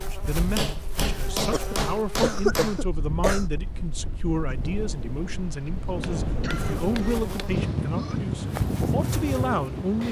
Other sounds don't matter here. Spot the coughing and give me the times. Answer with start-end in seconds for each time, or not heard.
1.5-3.5, 6.4-8.2.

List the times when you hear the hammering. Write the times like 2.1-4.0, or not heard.
0.3-2.9, 6.0-7.5.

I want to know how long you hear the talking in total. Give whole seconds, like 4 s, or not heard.
10 s.